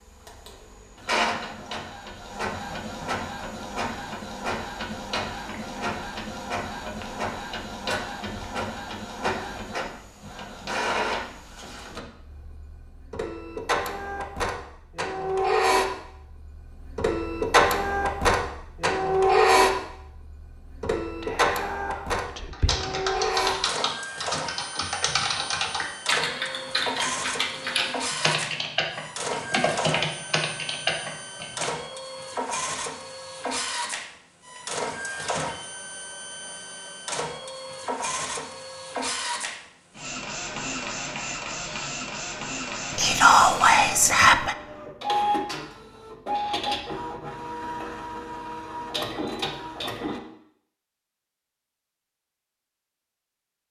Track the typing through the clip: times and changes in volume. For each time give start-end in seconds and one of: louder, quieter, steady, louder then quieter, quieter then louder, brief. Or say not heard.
22.5-31.6 steady.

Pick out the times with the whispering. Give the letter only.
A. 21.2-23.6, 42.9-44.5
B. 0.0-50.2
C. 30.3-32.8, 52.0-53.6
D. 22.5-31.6
A.